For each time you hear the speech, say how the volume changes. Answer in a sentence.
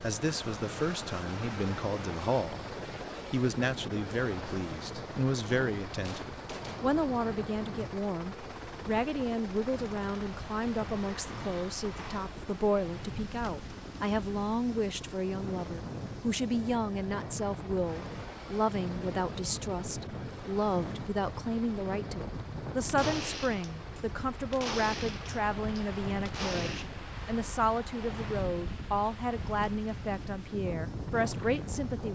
You can hear the speech from 0.0 to 32.1 s, at a steady volume.